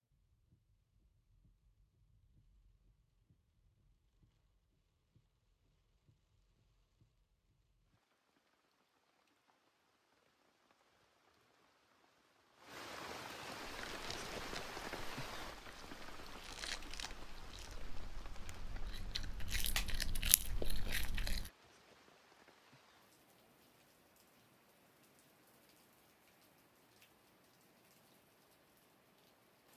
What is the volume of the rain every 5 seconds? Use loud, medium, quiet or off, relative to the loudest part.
quiet, quiet, loud, loud, quiet, quiet.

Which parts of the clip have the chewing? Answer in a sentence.
The chewing can be heard from 13.6 to 21.5 s.